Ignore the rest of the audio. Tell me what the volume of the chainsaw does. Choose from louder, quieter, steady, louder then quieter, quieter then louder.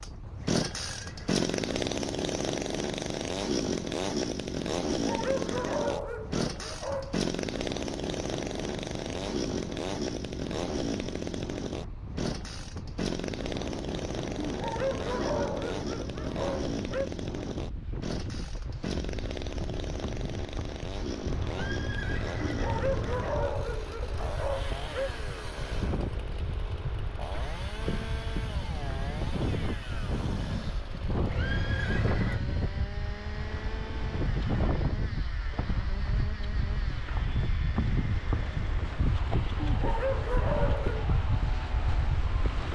quieter.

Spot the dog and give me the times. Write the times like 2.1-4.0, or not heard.
5.0-7.2, 14.4-17.1, 22.4-25.1, 39.6-41.1.